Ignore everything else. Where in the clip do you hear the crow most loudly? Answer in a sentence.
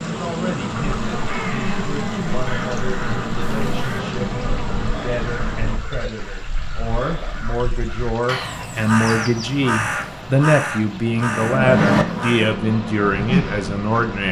The volume of the crow peaks at 12 seconds.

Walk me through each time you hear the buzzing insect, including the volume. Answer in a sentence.
The buzzing insect can be heard from 0.0 to 5.8 s, at a steady volume; and briefly from 11.6 to 14.2 s.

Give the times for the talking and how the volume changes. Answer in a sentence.
The talking can be heard from 0.0 to 14.2 s, getting louder.